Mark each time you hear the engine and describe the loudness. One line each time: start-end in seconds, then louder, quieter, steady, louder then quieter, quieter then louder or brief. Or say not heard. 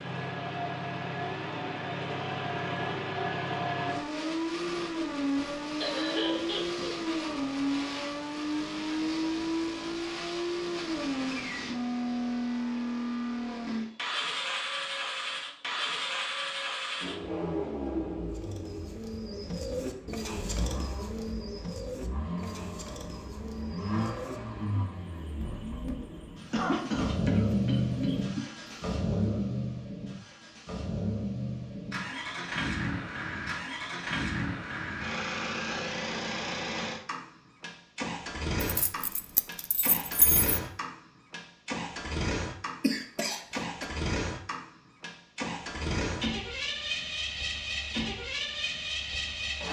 0.0-49.6 steady.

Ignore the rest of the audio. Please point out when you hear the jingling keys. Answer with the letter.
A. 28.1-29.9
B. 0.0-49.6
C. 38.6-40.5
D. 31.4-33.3
C.